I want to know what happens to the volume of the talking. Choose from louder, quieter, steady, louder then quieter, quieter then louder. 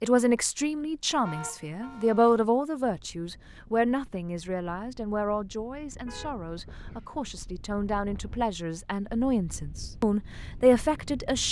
quieter then louder.